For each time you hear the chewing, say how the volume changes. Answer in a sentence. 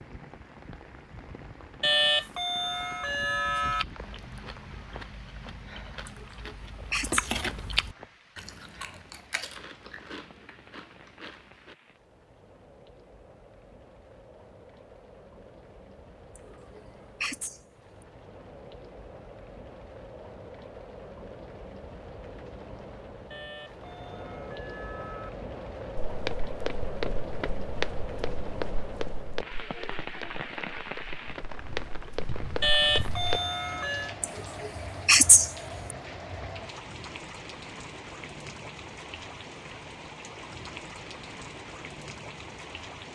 The chewing can be heard from 3.6 to 11.8 s, getting louder then quieter.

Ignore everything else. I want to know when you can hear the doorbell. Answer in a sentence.
You can hear the doorbell from 1.8 to 3.9 s, from 23.3 to 25.3 s and from 32.6 to 34.1 s.